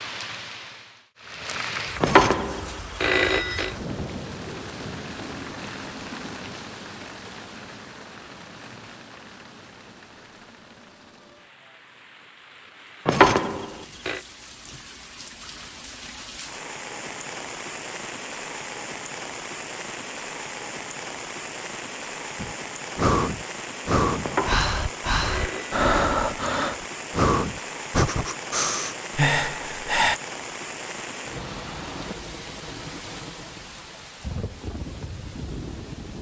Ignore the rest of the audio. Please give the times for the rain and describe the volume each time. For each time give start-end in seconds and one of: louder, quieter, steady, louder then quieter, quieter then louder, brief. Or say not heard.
0.0-36.1 quieter then louder.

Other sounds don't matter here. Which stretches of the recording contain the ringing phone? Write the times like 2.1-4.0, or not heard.
2.0-3.8, 13.1-14.2, 24.2-25.9.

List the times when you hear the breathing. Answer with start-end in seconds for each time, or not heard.
22.4-30.2.